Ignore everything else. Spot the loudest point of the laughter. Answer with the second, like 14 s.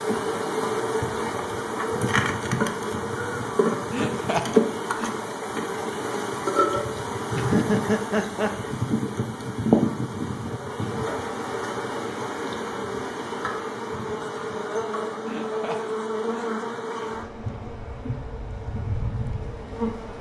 8 s.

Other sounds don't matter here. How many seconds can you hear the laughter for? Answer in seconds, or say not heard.
4 s.